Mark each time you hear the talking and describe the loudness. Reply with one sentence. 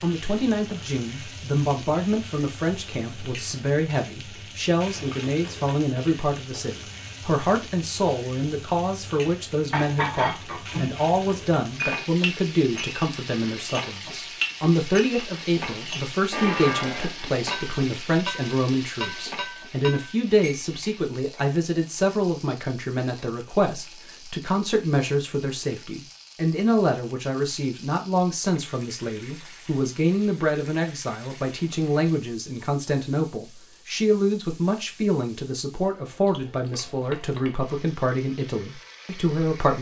The talking can be heard from 0.0 to 39.7 s, at a steady volume.